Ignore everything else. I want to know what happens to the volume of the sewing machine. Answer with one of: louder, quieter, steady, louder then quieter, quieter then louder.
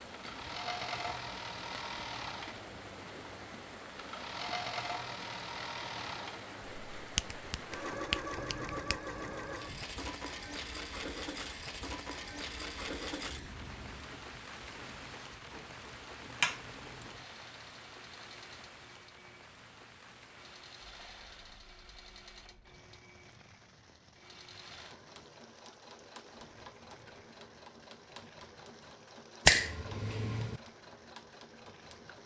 quieter.